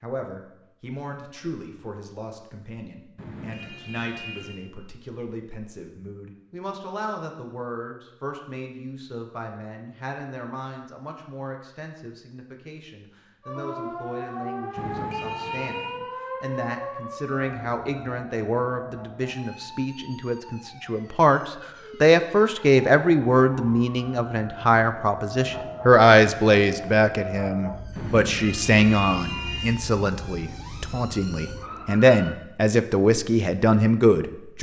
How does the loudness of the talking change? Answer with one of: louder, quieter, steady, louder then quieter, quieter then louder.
louder.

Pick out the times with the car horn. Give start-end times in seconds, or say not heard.
3.1-4.6, 14.8-16.0, 27.9-29.8.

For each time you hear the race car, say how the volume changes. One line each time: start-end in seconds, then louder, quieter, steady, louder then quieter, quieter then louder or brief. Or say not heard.
not heard.